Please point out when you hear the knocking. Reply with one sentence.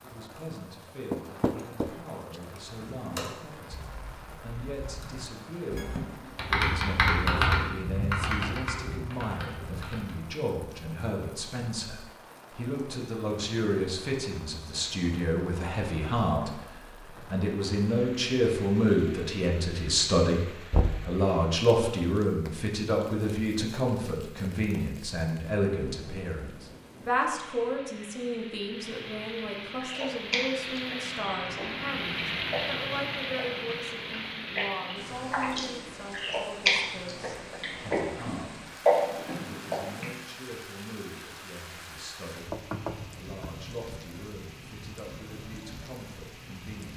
The knocking can be heard from 1.1 to 1.9 s, from 20.7 to 21.1 s and from 42.5 to 43.3 s.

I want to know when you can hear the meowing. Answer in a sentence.
You can't hear the meowing here.